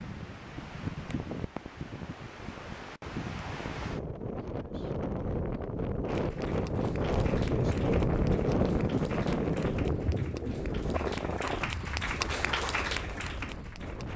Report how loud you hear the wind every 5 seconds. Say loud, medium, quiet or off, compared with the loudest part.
medium, loud, medium.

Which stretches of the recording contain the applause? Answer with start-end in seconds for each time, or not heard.
6.0-14.1.